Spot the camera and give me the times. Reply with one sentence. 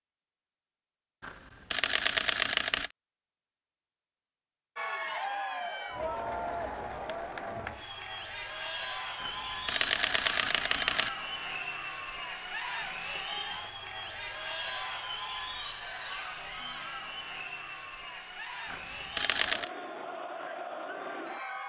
You can hear the camera from 1.2 to 2.9 s, from 9.2 to 11.1 s and from 18.7 to 19.7 s.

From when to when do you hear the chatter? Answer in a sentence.
The chatter can be heard from 4.8 to 21.6 s.